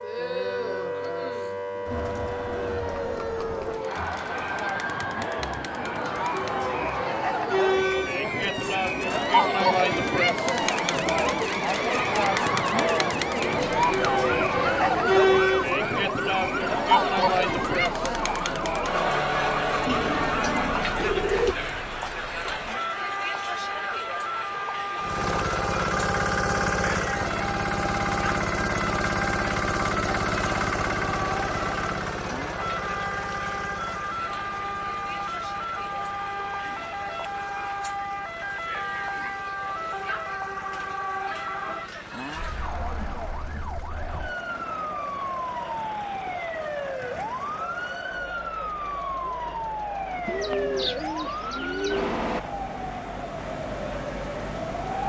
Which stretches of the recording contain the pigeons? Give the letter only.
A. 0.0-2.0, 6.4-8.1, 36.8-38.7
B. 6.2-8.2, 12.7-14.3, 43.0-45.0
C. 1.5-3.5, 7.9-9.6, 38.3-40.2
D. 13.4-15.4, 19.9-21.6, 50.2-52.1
D.